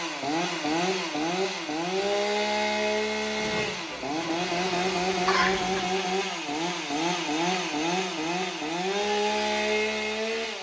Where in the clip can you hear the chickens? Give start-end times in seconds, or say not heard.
3.4-5.8.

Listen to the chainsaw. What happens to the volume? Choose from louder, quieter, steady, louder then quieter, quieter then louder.
steady.